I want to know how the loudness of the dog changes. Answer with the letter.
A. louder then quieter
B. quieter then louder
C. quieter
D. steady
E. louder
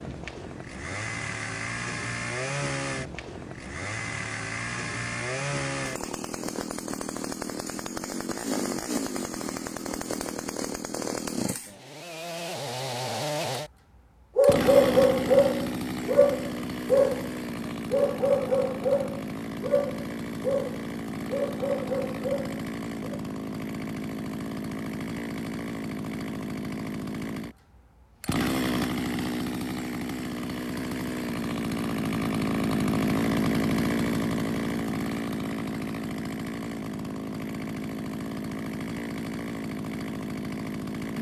C.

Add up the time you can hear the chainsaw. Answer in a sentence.
You can hear the chainsaw for 41 seconds altogether.